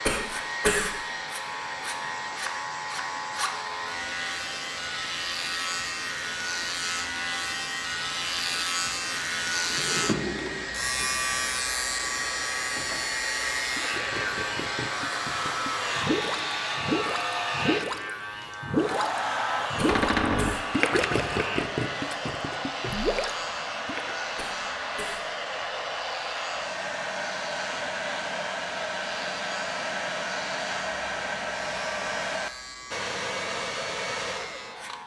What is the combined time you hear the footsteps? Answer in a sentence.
You can't hear the footsteps here.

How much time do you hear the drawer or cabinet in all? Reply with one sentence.
You can hear the drawer or cabinet for 2 seconds altogether.